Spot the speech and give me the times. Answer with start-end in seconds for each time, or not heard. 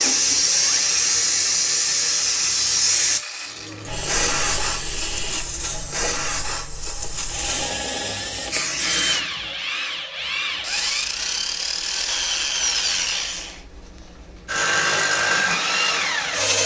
not heard.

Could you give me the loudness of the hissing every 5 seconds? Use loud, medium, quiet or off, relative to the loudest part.
loud, medium, off, off.